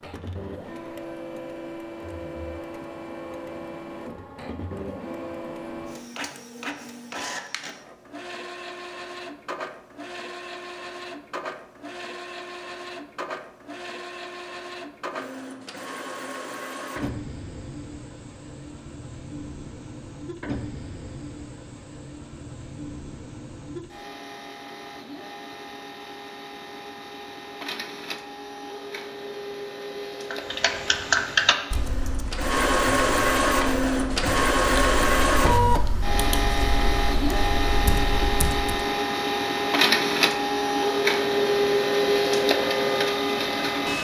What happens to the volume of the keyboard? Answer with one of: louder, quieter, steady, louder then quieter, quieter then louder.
quieter then louder.